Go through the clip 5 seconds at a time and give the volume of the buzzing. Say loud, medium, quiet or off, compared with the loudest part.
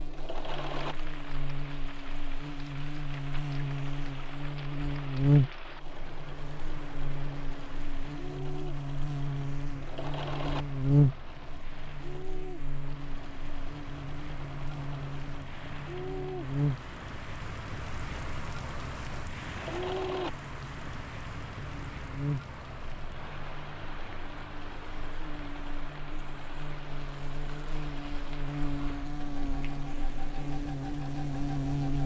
medium, loud, loud, loud, medium, medium, loud.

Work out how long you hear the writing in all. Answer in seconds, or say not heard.
not heard.